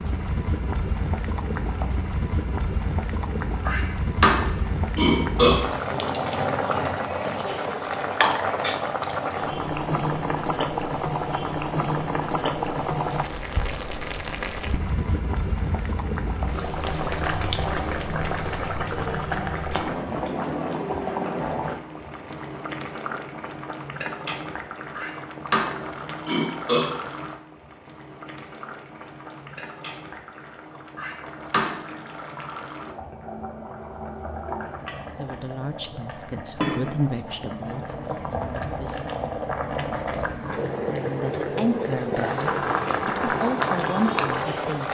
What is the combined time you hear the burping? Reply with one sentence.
The burping can be heard for 5 seconds in total.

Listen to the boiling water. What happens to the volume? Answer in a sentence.
The loudness of the boiling water goes down, then up.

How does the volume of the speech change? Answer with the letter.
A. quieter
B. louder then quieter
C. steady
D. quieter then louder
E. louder
D.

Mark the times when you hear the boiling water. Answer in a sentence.
The boiling water can be heard from 0.0 to 44.8 s.